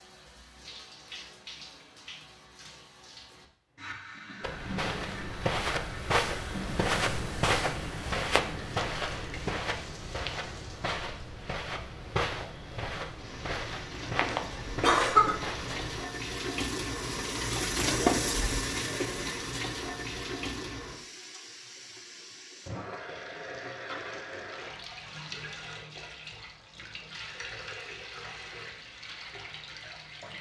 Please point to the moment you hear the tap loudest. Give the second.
18 s.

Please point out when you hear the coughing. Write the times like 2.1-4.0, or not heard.
14.6-15.3.